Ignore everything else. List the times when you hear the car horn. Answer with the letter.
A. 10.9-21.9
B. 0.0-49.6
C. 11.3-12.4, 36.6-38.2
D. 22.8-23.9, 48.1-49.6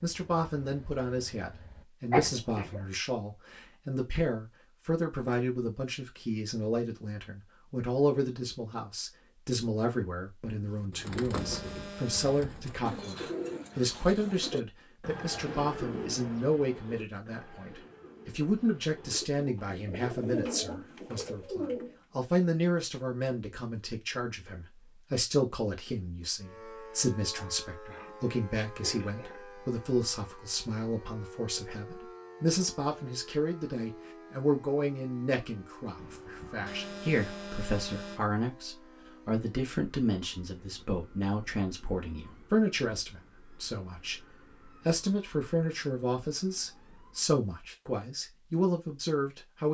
C.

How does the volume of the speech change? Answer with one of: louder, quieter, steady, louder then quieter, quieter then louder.
steady.